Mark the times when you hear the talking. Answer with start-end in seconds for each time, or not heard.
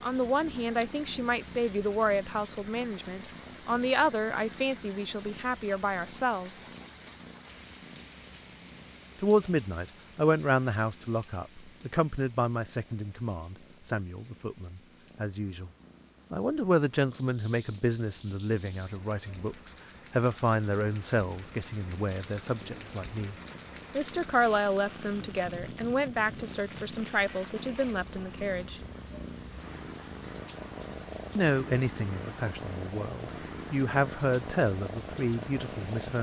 0.0-6.7, 9.2-15.7, 16.3-28.8, 31.4-36.1.